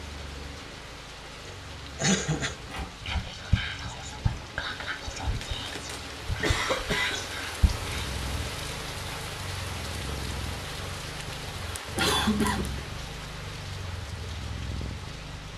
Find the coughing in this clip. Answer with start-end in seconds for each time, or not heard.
1.4-2.5, 5.4-7.3, 11.8-12.8.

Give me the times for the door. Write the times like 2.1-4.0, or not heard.
2.2-2.9.